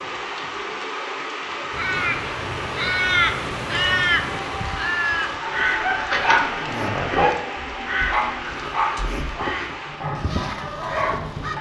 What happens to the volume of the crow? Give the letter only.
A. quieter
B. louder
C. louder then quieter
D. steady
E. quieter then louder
A.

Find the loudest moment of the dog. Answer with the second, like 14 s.
6 s.